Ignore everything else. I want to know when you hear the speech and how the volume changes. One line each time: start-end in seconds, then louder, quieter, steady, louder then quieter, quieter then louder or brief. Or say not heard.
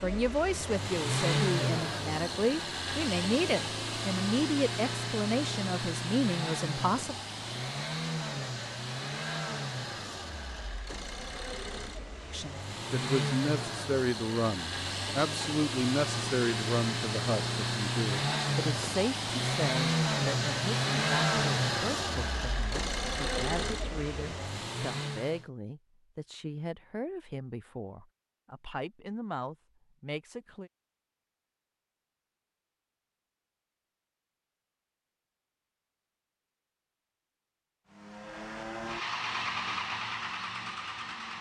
0.0-7.2 steady
12.3-30.7 quieter.